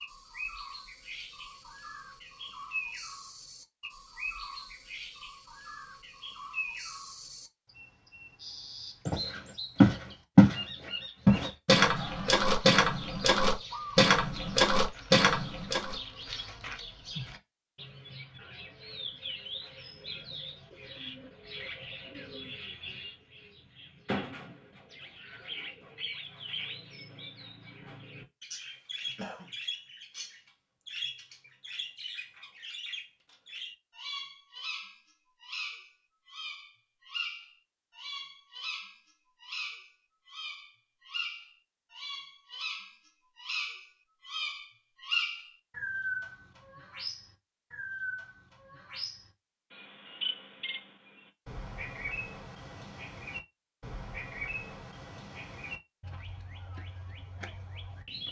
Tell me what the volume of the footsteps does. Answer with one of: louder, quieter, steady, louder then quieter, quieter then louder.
quieter.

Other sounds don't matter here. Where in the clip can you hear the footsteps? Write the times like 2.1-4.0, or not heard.
9.1-15.9.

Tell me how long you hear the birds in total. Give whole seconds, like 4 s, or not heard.
58 s.